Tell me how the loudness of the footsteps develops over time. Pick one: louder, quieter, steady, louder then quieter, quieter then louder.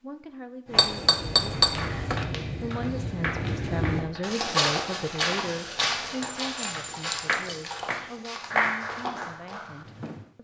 louder then quieter.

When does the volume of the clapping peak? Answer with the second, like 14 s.
9 s.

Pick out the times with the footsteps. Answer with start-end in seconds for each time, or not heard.
0.7-9.2.